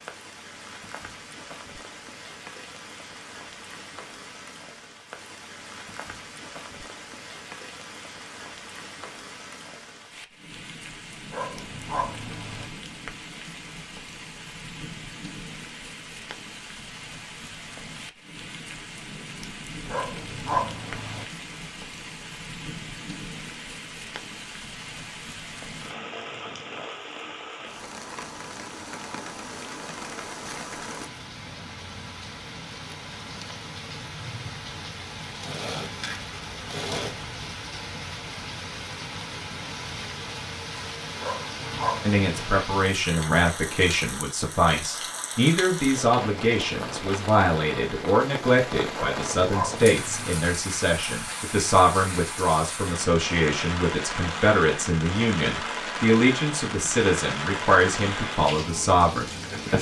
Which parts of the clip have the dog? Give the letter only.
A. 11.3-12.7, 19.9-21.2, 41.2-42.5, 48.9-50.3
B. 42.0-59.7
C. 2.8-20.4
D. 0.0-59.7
A.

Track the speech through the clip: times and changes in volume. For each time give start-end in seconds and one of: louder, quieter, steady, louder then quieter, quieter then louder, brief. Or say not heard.
42.0-59.7 steady.